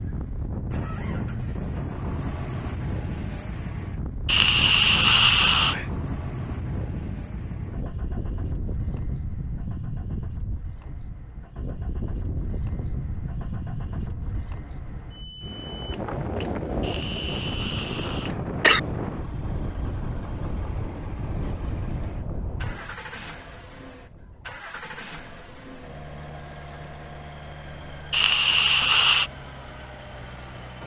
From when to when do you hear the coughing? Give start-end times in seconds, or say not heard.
4.2-5.8, 16.8-18.8, 28.1-29.3.